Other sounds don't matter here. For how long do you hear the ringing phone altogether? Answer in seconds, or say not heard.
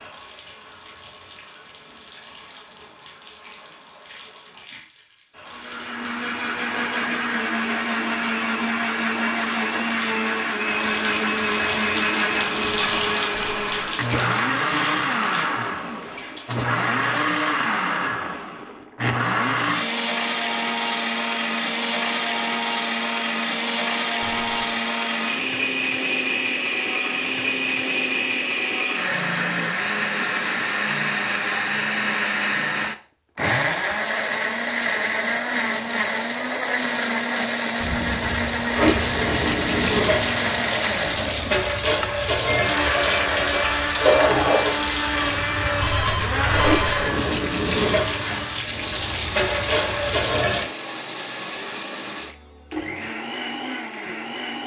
3 s.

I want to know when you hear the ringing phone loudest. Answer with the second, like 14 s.
47 s.